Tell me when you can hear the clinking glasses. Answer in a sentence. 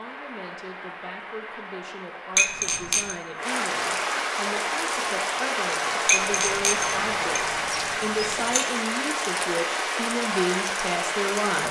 You can hear the clinking glasses from 2.4 to 3.1 s and from 6.0 to 8.7 s.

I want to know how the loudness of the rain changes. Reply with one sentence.
The loudness of the rain goes up.